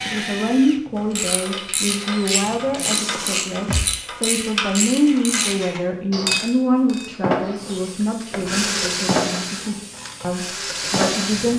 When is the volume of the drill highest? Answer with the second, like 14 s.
9 s.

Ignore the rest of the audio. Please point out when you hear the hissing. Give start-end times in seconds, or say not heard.
7.2-11.5.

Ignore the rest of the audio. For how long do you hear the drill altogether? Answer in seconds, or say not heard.
7 s.